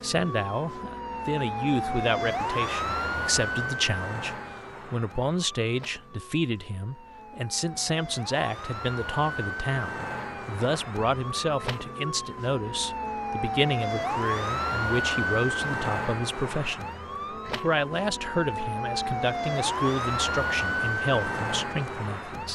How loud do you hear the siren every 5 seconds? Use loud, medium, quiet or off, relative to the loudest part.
loud, medium, loud, loud, loud.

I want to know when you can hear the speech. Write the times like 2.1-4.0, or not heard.
0.0-16.9, 17.4-22.5.